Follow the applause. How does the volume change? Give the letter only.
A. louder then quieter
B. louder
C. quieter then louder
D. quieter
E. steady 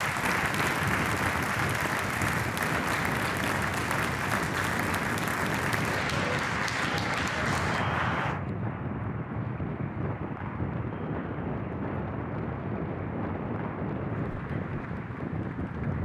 D.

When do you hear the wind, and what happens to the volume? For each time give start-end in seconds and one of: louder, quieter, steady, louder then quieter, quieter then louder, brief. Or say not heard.
0.0-15.9 steady.